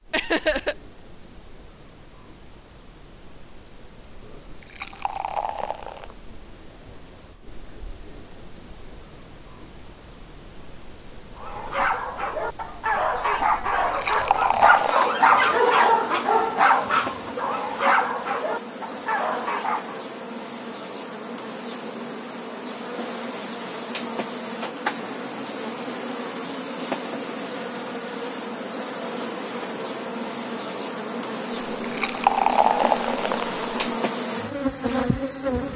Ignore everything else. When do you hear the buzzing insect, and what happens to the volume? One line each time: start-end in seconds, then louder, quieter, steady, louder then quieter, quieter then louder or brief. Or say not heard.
0.0-35.7 louder.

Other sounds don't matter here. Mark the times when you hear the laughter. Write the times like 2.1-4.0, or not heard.
0.1-0.8.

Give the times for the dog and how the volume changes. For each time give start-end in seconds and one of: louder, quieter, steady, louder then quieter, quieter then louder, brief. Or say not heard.
11.3-20.0 louder then quieter.